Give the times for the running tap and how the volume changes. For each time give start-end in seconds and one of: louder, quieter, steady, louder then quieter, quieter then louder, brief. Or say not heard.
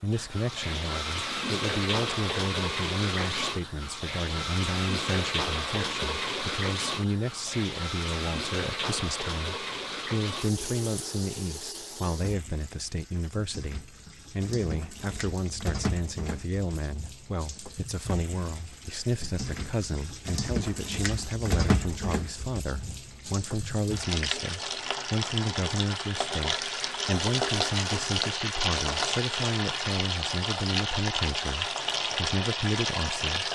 0.1-33.5 quieter then louder.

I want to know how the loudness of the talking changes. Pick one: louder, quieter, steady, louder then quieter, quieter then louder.
steady.